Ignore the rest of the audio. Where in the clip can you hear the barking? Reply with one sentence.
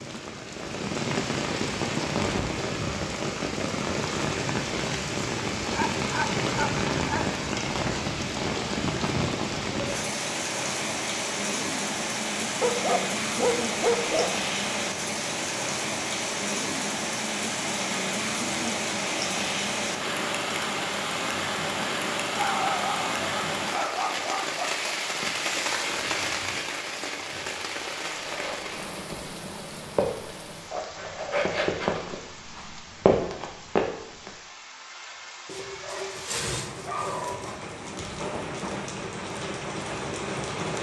You can hear the barking from 5.7 to 7.2 s, from 12.6 to 14.3 s, from 22.3 to 24.9 s and from 35.5 to 37.6 s.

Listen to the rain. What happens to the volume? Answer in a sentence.
The loudness of the rain goes down.